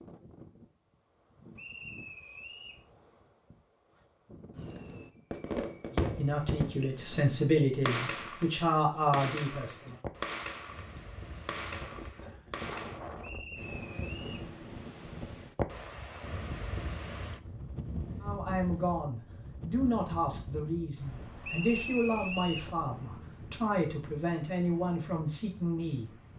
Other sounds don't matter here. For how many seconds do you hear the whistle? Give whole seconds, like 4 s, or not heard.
4 s.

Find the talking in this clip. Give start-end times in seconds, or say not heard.
5.9-9.9, 18.2-26.1.